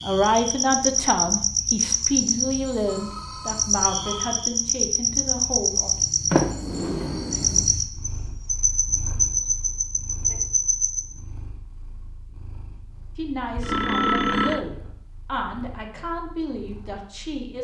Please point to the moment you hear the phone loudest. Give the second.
14 s.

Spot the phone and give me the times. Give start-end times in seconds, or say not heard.
2.9-4.4, 13.6-14.6.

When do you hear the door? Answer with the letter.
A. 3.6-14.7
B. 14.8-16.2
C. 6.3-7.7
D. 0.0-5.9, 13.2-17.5
C.